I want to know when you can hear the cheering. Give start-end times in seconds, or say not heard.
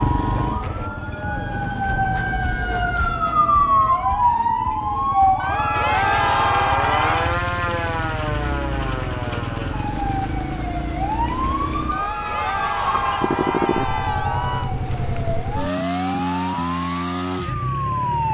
5.4-7.4, 11.9-14.8.